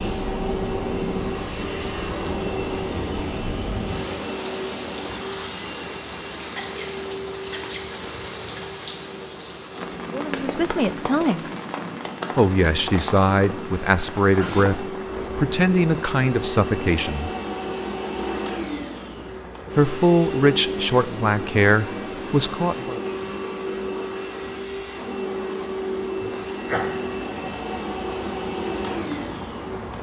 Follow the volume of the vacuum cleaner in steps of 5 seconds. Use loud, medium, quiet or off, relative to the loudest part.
loud, medium, medium, loud, loud, loud.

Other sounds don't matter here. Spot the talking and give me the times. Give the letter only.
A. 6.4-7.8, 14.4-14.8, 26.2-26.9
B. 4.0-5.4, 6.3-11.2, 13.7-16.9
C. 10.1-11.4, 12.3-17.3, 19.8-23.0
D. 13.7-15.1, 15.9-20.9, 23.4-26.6
C.